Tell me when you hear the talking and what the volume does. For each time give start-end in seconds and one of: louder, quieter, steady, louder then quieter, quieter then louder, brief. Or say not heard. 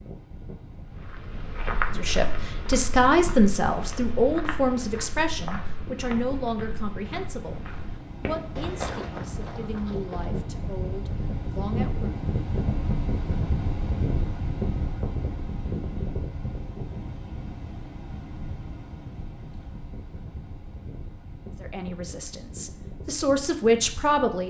1.9-12.2 quieter
21.6-24.4 brief.